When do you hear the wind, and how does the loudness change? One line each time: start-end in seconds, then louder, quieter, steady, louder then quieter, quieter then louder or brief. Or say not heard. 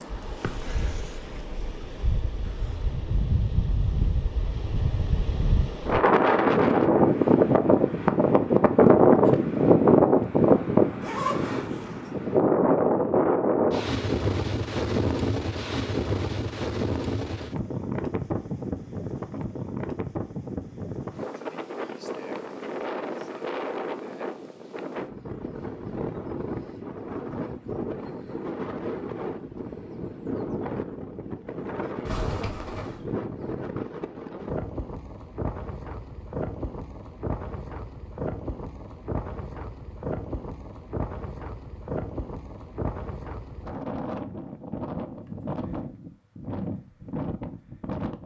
0.0-48.2 quieter.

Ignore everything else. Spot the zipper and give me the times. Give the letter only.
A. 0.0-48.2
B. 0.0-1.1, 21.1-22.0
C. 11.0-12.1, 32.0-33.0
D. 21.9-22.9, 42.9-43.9
C.